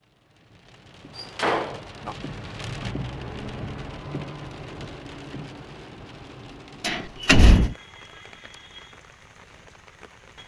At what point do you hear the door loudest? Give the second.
7 s.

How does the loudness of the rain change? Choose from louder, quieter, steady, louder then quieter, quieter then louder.
louder then quieter.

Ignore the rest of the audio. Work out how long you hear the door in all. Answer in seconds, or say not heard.
2 s.